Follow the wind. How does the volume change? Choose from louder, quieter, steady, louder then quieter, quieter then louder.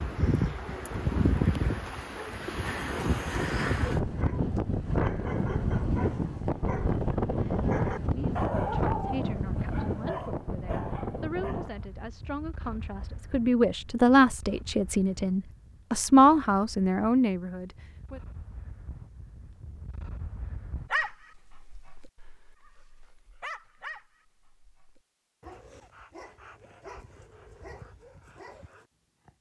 quieter.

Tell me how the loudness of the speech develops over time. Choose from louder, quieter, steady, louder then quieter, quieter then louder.
louder.